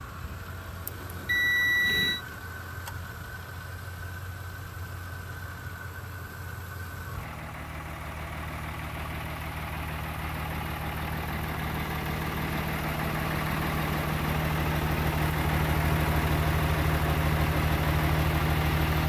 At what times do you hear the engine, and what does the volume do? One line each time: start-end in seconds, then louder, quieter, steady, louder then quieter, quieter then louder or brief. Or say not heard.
0.0-19.0 louder.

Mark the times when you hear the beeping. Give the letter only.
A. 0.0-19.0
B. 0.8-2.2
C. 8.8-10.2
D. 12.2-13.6
B.